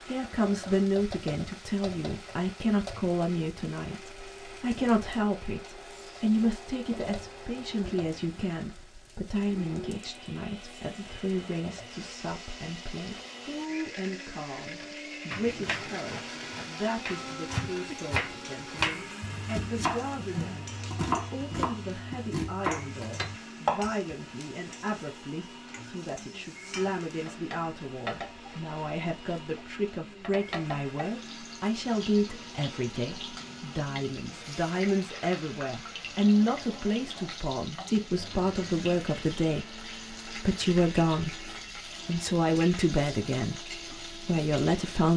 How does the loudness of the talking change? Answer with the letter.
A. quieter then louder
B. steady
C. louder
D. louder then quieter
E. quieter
A.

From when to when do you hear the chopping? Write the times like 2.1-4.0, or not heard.
14.8-23.9.